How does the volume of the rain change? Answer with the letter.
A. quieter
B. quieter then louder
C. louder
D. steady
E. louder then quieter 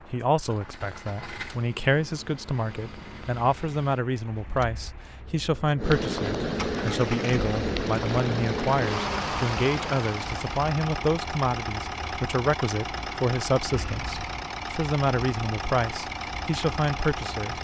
C.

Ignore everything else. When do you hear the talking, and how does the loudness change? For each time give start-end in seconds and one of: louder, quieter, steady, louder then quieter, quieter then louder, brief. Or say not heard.
0.1-17.5 steady.